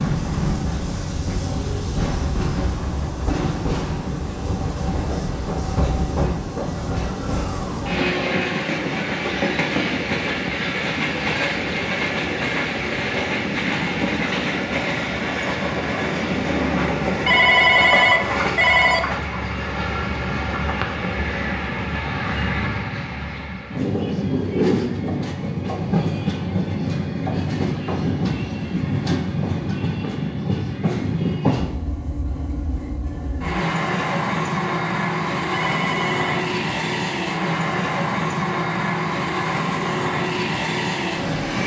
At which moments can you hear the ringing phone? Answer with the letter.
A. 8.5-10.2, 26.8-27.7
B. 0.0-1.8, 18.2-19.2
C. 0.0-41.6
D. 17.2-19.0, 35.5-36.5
D.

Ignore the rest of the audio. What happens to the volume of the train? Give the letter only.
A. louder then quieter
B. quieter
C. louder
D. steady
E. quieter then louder
D.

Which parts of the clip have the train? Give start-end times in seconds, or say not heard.
0.0-41.6.